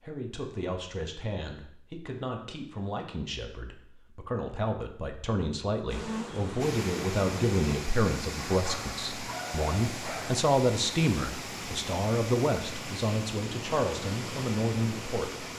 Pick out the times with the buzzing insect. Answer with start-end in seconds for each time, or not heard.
5.9-7.7.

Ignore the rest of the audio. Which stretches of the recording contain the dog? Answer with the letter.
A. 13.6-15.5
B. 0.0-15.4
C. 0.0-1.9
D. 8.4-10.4
D.